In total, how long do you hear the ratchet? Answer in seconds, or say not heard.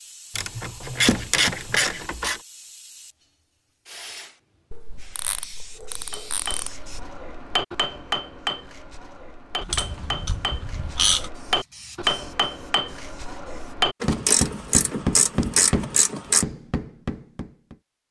9 s.